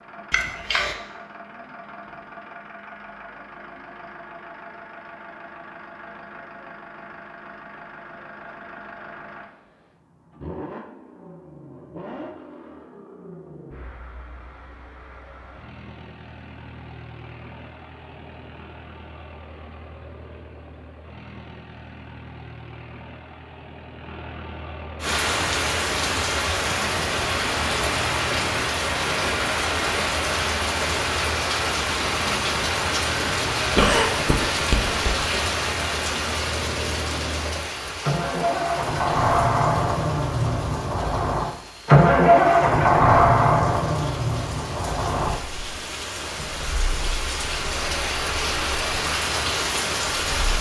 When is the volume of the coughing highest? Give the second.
34 s.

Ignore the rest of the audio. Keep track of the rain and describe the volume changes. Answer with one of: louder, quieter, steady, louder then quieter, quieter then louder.
quieter then louder.